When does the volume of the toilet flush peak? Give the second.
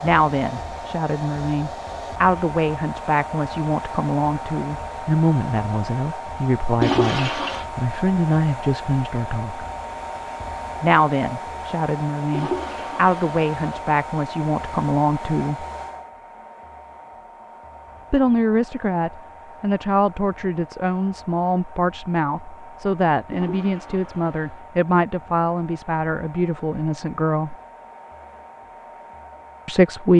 7 s.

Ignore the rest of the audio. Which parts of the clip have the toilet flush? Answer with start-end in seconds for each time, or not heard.
6.8-7.7, 12.3-13.8, 23.3-24.6.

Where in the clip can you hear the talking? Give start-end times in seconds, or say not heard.
0.0-9.7, 10.8-15.7, 18.1-27.6, 29.6-30.1.